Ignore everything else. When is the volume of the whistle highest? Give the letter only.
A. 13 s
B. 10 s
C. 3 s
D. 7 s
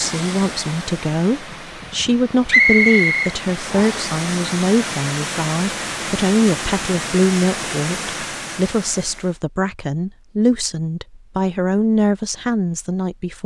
C.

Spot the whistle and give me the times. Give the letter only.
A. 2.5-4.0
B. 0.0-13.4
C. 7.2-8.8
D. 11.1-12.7
A.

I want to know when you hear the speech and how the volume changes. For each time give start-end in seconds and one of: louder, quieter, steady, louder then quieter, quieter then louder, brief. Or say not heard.
0.0-13.4 steady.